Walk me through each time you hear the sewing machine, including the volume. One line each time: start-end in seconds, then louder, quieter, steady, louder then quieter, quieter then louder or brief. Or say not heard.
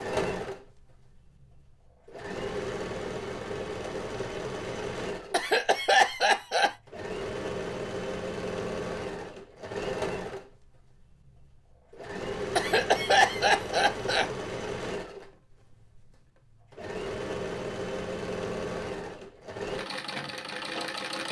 0.0-21.2 steady.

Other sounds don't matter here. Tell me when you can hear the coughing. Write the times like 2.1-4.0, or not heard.
5.3-6.8, 12.6-14.3.